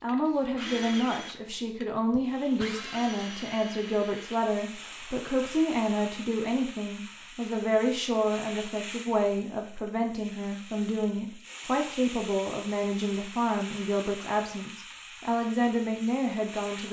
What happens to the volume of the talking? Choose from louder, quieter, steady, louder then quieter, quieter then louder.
steady.